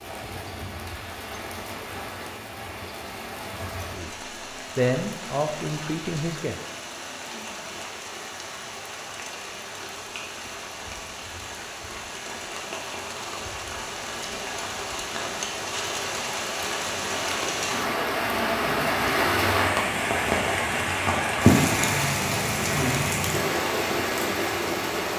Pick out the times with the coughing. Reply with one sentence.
The coughing can't be heard in this clip.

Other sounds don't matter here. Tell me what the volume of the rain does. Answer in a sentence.
The loudness of the rain goes up.